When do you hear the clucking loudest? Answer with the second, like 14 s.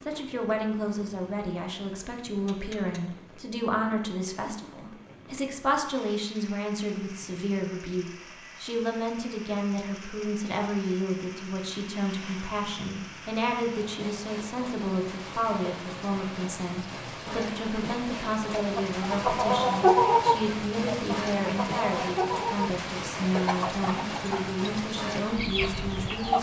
20 s.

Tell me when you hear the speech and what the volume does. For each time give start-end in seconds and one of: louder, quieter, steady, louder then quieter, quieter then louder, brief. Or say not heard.
0.1-26.3 steady.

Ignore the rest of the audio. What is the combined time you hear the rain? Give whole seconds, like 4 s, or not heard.
26 s.